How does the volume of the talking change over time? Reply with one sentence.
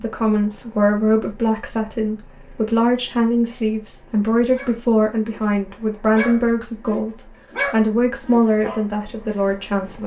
The volume of the talking stays about the same.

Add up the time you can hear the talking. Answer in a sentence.
You can hear the talking for 10 seconds altogether.